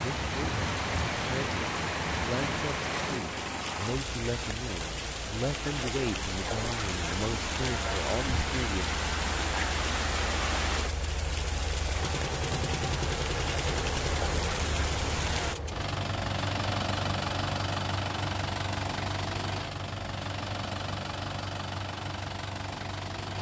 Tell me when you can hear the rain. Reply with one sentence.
You can hear the rain from 0.0 to 15.6 s.